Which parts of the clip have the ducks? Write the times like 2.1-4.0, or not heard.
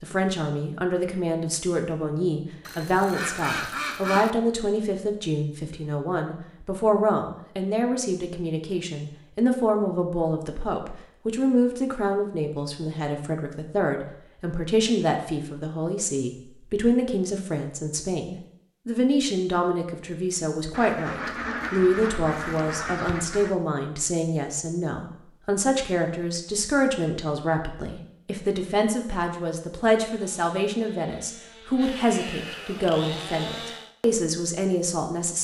2.6-4.3, 20.7-23.6.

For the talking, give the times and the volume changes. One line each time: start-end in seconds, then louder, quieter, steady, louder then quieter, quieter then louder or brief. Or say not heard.
0.0-35.4 steady.